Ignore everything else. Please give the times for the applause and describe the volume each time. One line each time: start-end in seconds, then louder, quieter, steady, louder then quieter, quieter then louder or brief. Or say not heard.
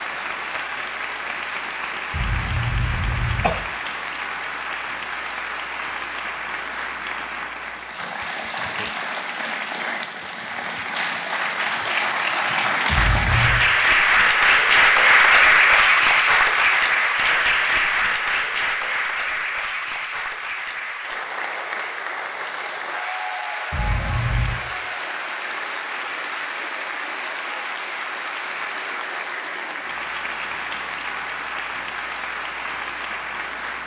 0.0-33.8 louder then quieter.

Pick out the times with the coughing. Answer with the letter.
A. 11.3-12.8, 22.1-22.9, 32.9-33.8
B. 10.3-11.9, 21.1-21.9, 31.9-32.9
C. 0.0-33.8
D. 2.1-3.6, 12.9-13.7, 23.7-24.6
D.